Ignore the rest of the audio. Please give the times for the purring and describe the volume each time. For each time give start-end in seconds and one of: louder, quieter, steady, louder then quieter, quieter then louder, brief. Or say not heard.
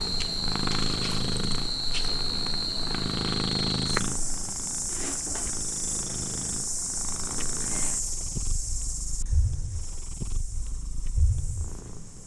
0.0-12.2 quieter.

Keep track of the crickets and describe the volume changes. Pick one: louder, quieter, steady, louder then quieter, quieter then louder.
quieter.